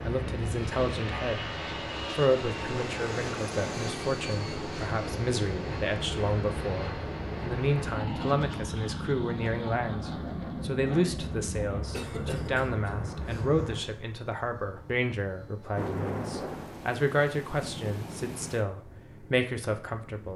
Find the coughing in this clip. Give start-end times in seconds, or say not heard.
11.9-13.4.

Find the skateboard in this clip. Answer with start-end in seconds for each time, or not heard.
not heard.